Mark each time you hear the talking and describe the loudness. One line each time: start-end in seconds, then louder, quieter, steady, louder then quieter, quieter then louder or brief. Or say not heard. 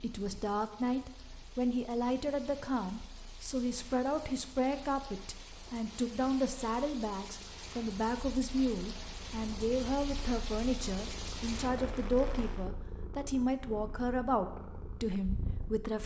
0.0-16.0 steady.